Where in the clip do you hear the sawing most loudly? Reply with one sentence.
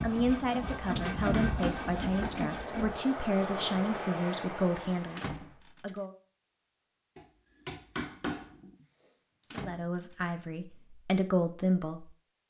The loudest moment of the sawing is at 1 second.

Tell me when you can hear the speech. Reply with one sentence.
You can hear the speech from 0.0 to 6.2 s and from 9.4 to 12.1 s.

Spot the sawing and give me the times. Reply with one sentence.
You can hear the sawing from 0.0 to 3.0 s.